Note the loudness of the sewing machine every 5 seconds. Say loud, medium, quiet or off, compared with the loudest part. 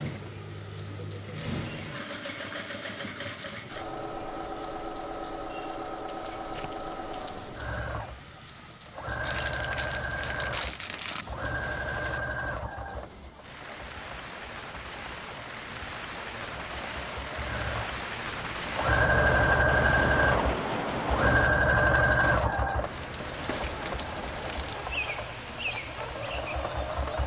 medium, medium, medium, loud, loud, medium.